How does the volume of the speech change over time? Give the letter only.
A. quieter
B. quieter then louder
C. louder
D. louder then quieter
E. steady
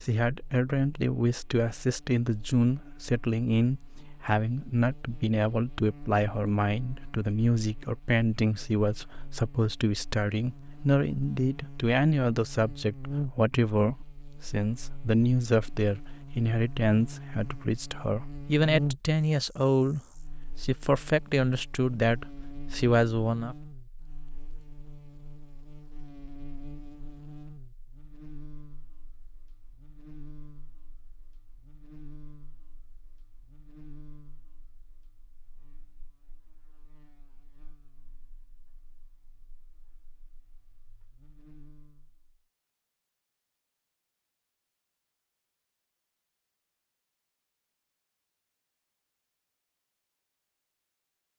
E.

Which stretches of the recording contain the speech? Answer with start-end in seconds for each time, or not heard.
0.0-23.6.